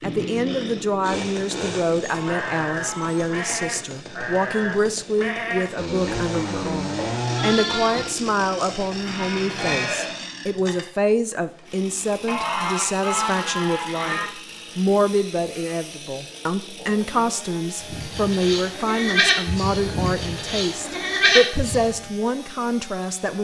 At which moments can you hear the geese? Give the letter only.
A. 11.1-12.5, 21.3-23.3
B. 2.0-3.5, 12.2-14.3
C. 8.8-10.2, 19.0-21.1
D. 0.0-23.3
B.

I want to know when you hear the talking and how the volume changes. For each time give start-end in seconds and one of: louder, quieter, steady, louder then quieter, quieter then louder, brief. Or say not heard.
0.0-23.3 steady.